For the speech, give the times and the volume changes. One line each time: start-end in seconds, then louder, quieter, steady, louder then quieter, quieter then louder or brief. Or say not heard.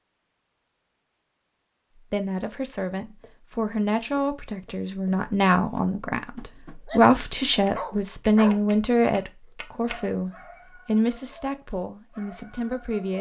2.1-13.1 louder then quieter.